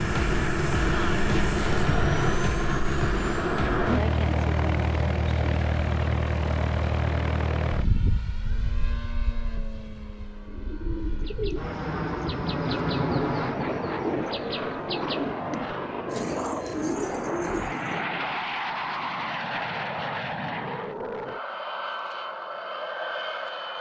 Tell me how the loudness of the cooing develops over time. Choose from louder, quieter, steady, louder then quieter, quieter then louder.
steady.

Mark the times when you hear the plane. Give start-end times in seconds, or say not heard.
0.0-23.7.